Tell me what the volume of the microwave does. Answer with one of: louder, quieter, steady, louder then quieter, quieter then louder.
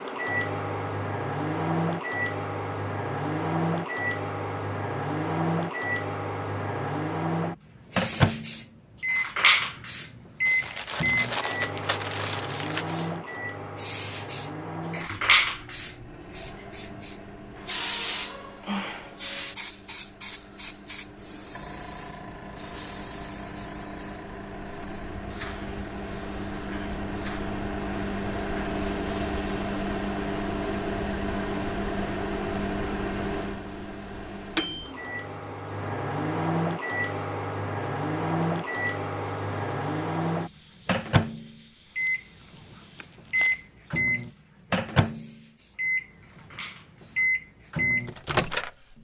quieter then louder.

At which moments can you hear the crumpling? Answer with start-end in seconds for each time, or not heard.
10.4-13.1, 42.0-44.3.